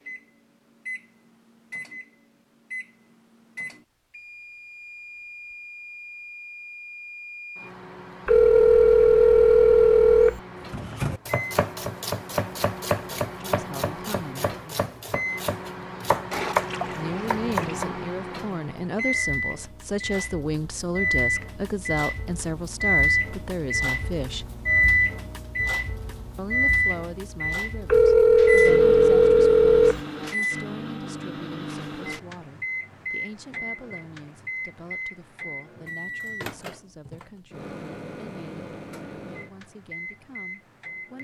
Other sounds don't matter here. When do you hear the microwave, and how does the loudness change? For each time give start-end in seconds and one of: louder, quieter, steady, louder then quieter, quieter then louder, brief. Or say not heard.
0.0-41.1 louder then quieter.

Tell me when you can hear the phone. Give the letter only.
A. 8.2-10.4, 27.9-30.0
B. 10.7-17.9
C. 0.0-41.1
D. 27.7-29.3
A.